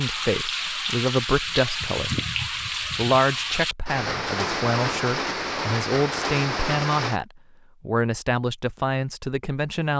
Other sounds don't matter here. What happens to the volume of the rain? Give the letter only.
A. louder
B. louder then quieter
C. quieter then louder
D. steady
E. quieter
D.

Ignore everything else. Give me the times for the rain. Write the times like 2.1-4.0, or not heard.
0.0-7.2.